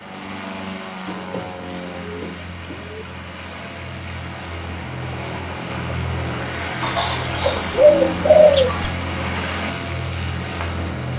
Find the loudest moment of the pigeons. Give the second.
8 s.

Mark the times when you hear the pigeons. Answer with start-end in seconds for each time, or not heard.
1.1-3.0, 6.8-8.9.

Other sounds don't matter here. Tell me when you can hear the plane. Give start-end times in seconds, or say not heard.
0.0-11.1.